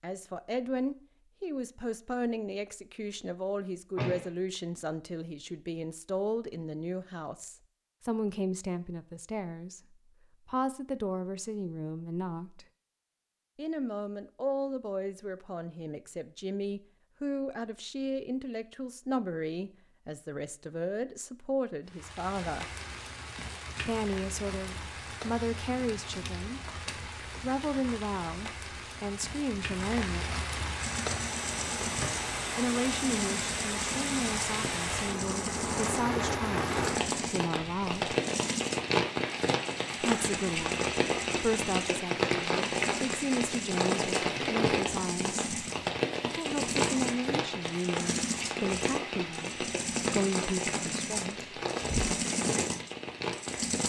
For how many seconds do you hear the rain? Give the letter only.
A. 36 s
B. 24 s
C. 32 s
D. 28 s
C.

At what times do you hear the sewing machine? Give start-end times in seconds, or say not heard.
30.8-53.8.